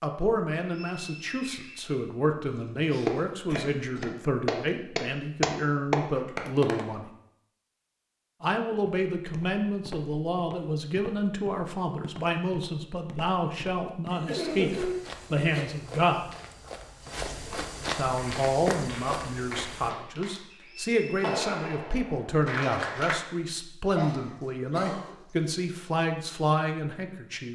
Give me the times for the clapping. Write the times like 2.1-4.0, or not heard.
3.0-6.8, 18.1-23.1.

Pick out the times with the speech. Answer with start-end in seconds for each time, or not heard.
0.0-7.0, 8.4-16.2, 17.9-27.4.